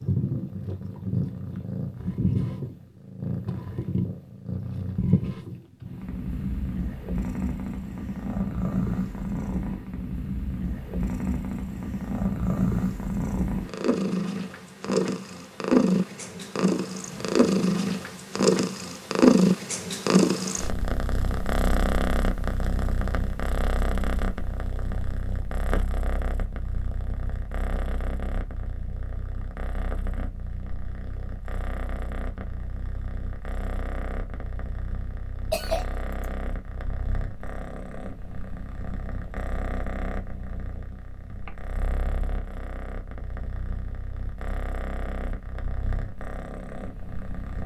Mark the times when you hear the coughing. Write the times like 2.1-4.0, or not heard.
35.5-36.2.